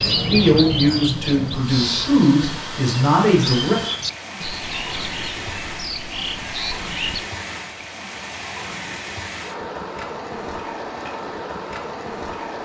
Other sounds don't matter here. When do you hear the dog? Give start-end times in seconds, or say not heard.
not heard.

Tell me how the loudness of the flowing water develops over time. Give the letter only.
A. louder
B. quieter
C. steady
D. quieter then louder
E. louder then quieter
C.